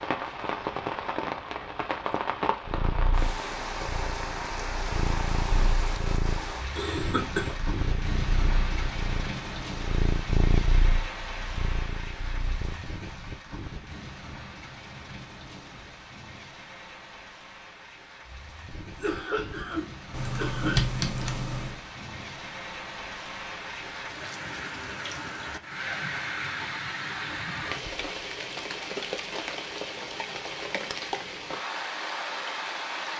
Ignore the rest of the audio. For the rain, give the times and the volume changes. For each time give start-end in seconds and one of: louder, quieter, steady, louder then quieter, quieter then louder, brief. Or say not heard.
0.0-33.1 quieter then louder.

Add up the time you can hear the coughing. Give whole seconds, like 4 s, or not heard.
3 s.